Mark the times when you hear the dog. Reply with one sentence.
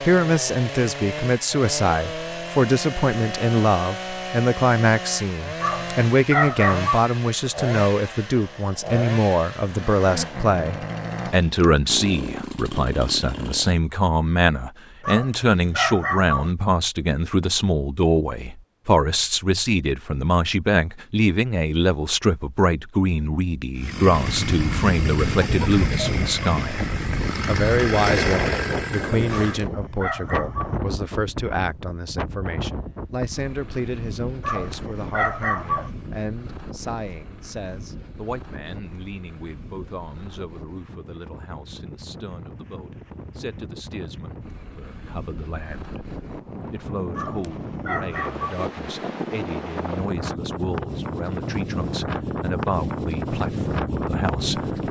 The dog can be heard from 5.6 to 7.1 s, from 15.0 to 16.6 s, from 29.3 to 30.8 s, from 34.4 to 36.0 s and from 47.1 to 48.6 s.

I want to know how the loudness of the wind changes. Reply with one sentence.
The volume of the wind goes down, then up.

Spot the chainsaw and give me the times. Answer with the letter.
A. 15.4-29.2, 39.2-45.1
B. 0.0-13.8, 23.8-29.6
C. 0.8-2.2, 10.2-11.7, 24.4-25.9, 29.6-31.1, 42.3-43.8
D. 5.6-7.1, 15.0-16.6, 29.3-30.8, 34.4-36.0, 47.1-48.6
B.